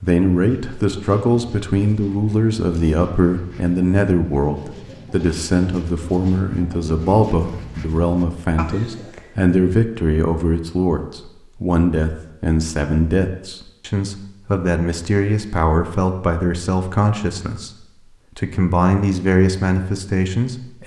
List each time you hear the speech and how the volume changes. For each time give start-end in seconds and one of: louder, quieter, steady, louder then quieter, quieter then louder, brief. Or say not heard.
0.0-20.8 steady.